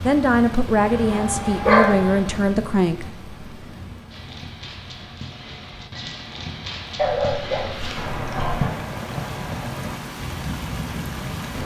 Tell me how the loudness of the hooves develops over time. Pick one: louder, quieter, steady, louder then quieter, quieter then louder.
louder then quieter.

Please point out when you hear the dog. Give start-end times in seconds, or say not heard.
0.8-2.4, 7.0-8.7.